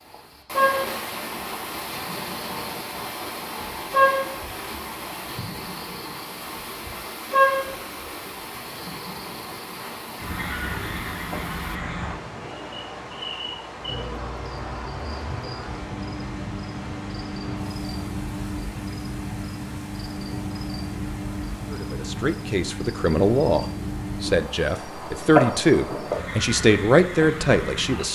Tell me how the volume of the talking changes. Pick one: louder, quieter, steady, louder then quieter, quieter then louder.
louder.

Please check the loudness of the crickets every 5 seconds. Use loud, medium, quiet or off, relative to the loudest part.
loud, loud, medium, medium, medium, loud.